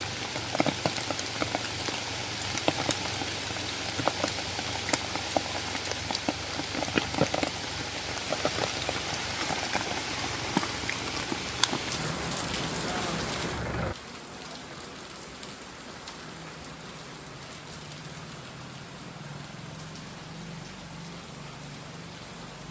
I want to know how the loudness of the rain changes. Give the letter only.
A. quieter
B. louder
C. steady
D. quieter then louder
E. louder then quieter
A.